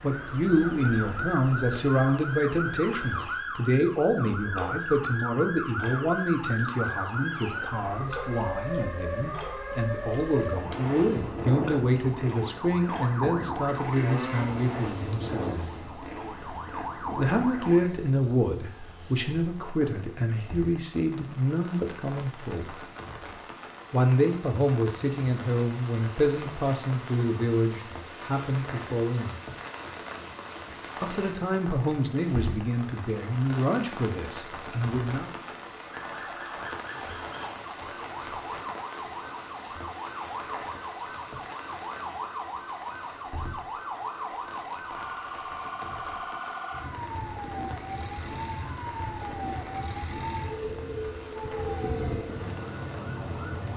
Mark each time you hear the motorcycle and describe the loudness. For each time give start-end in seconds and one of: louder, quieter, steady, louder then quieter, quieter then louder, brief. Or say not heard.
not heard.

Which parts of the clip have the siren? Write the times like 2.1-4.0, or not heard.
0.0-17.9, 35.8-53.7.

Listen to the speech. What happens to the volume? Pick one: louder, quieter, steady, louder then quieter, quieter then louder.
steady.